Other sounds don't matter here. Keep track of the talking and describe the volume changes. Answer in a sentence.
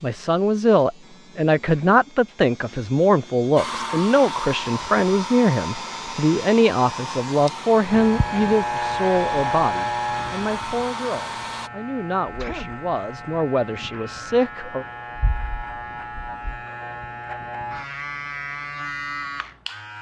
The loudness of the talking goes down.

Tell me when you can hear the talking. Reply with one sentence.
You can hear the talking from 0.0 to 14.8 s.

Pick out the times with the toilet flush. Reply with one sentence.
You can't hear the toilet flush here.